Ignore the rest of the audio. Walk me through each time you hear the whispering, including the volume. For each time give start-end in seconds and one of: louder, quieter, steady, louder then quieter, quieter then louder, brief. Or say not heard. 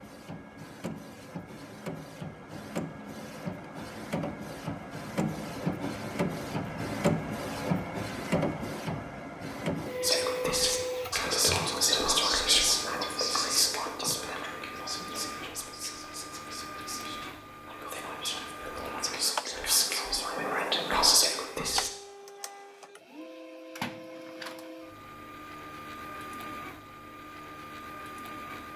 10.0-21.9 quieter then louder.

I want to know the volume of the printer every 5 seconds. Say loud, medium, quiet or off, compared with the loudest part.
medium, loud, medium, medium, medium, medium.